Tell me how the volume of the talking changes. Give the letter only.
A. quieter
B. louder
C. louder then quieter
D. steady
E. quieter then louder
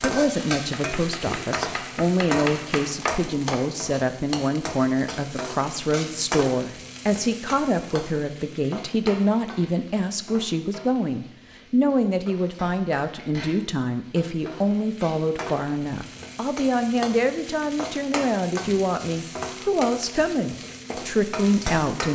D.